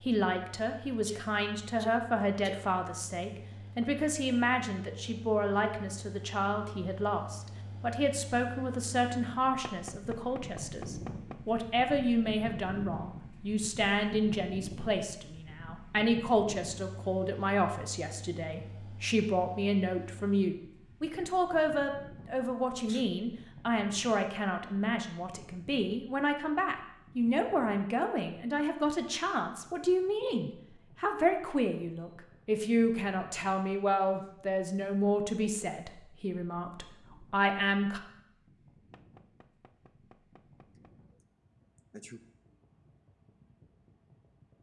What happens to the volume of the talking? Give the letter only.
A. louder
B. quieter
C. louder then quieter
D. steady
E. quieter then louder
D.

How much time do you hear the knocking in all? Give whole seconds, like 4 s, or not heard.
4 s.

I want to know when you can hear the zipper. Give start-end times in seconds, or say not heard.
not heard.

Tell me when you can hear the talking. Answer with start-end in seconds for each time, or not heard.
0.0-38.0.